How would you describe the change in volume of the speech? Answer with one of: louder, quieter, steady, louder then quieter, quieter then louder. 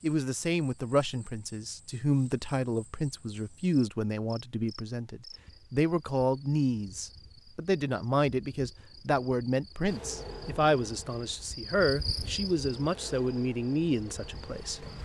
steady.